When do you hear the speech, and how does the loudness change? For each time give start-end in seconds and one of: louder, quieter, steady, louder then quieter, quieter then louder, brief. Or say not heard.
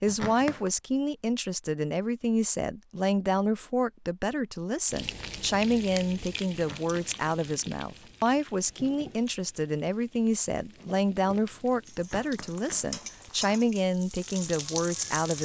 0.0-15.3 steady.